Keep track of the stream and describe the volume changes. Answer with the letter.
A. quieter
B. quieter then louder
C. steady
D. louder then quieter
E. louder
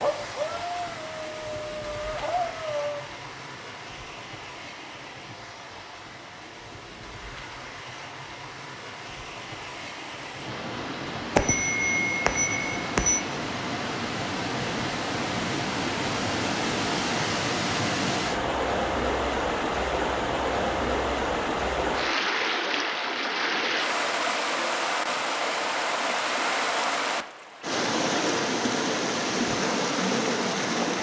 E.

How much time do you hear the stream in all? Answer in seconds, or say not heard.
31 s.